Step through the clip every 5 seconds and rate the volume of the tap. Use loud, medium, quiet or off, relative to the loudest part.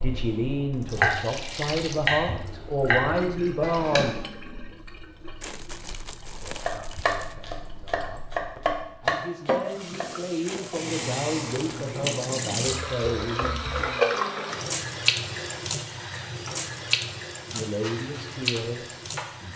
medium, medium, loud, loud.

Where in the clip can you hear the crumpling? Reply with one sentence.
You can hear the crumpling from 5.4 to 7.3 s and from 10.4 to 11.9 s.